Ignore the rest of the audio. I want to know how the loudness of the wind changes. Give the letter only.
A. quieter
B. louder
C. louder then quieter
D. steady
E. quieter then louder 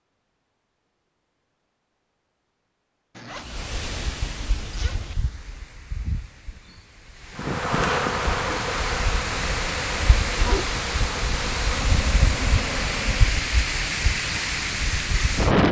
B.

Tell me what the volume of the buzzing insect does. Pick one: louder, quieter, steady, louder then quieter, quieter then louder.
quieter.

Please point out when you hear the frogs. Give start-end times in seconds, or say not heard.
not heard.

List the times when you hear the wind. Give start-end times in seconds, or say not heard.
3.4-15.6.